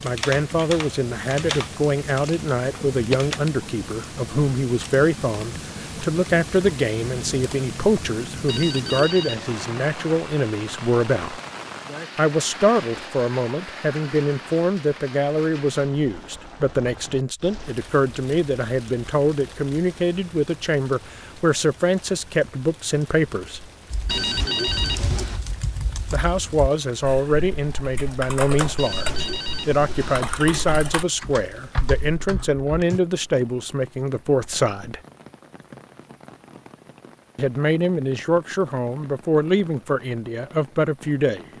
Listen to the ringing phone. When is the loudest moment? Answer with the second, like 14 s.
25 s.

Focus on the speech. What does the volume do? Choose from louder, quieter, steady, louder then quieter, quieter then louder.
steady.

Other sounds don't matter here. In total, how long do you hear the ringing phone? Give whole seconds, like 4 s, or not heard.
4 s.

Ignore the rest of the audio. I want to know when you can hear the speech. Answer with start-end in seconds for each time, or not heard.
0.0-11.4, 12.2-23.7, 26.1-35.0, 37.4-41.5.